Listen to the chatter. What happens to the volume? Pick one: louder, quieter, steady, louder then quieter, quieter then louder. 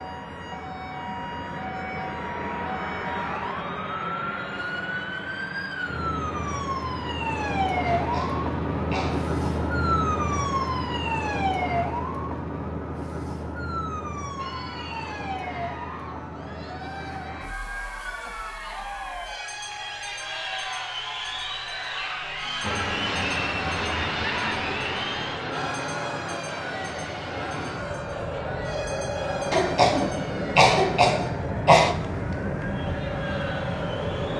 louder then quieter.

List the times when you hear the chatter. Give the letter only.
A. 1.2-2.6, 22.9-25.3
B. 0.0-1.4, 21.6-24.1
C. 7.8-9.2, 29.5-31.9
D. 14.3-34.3
D.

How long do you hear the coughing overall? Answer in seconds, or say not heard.
4 s.